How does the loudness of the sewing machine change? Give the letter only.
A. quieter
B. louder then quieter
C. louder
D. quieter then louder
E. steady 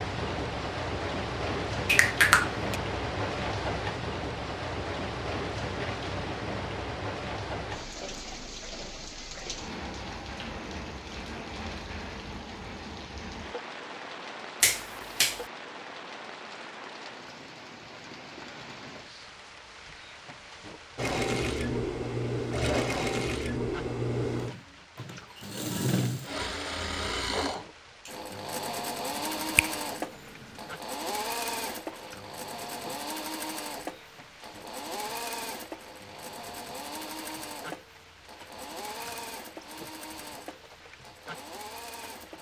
A.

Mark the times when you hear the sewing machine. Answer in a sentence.
You can hear the sewing machine from 20.9 to 42.3 s.